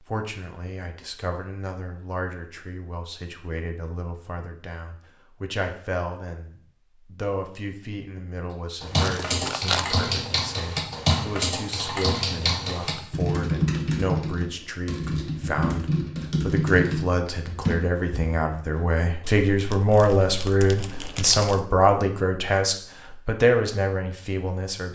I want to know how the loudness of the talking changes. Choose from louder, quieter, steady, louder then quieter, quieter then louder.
louder.